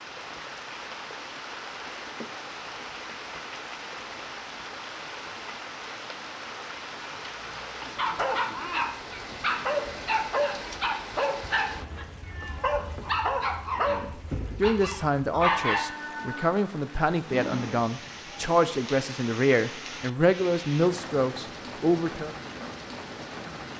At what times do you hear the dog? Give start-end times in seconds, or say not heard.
8.0-15.8.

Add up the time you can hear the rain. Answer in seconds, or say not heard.
24 s.